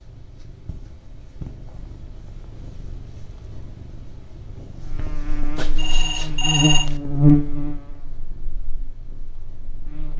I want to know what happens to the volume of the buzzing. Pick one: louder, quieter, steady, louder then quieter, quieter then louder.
louder then quieter.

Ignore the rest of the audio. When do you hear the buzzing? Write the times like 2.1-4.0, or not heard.
4.8-10.1.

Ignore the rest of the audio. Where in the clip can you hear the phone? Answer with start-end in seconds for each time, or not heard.
5.5-7.0.